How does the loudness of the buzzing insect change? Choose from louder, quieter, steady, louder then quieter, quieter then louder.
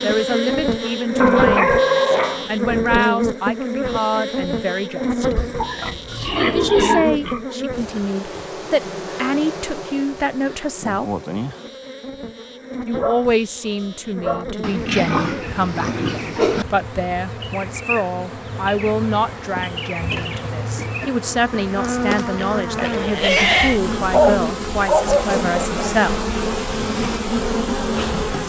quieter then louder.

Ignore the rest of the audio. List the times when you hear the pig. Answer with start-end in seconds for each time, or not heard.
5.3-7.5, 14.6-16.6, 22.4-23.8.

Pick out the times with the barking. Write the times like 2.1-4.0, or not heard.
1.2-2.5, 12.9-14.4, 23.5-25.9.